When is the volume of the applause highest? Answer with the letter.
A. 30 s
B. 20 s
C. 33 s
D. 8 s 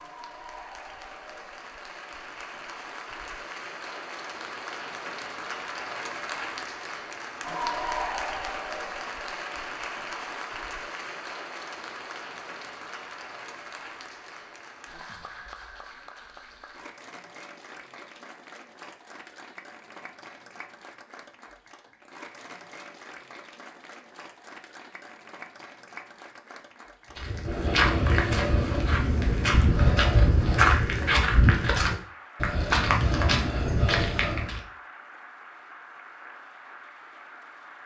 D.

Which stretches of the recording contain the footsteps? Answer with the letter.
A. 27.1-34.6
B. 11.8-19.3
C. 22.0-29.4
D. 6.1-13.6
A.